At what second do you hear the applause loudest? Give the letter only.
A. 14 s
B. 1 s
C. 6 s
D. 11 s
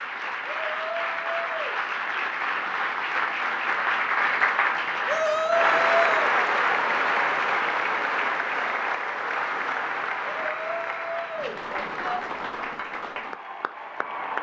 C.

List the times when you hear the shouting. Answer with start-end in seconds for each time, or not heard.
0.5-1.8, 5.0-6.3, 10.3-12.2.